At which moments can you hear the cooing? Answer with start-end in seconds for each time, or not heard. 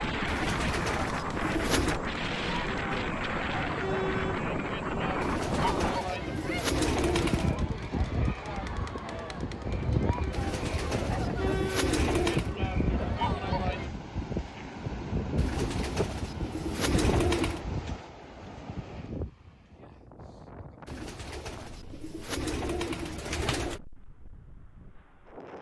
0.2-2.0, 5.2-7.5, 10.3-12.6, 15.3-17.6, 20.9-23.8.